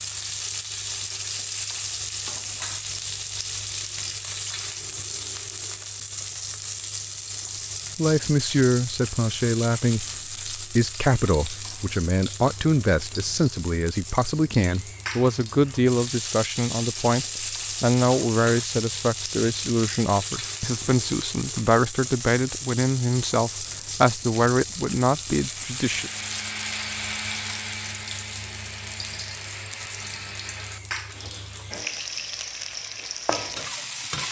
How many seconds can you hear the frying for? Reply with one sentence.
You can hear the frying for 34 seconds altogether.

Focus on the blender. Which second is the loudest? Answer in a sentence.
The loudest moment of the blender is at 27 seconds.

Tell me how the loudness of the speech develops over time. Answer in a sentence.
The volume of the speech stays about the same.